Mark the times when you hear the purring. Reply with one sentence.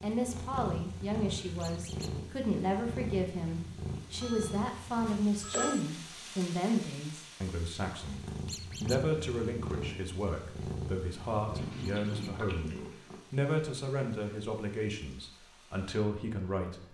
The purring can be heard from 0.0 to 5.8 s and from 8.0 to 13.2 s.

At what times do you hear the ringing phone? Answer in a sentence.
The ringing phone can be heard from 4.2 to 5.8 s.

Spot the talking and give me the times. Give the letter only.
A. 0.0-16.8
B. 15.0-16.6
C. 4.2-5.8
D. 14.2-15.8
A.